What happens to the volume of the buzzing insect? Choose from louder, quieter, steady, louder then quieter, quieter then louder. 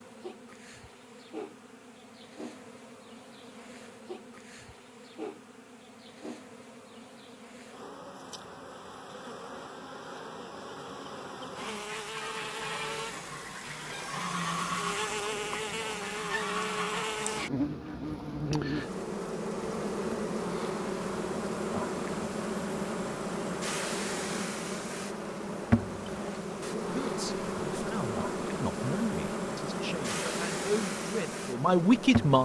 louder.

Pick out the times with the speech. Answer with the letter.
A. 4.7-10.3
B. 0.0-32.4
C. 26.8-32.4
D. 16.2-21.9
C.